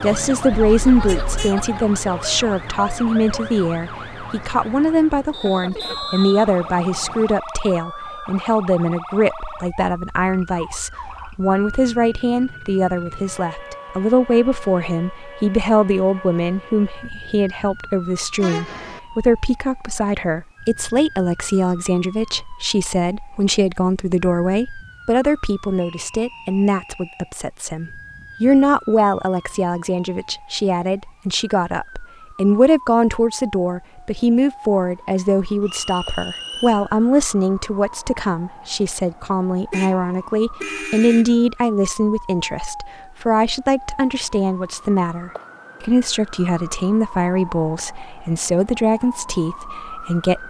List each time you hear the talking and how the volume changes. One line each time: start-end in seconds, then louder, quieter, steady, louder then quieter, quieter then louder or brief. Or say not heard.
0.0-50.4 steady.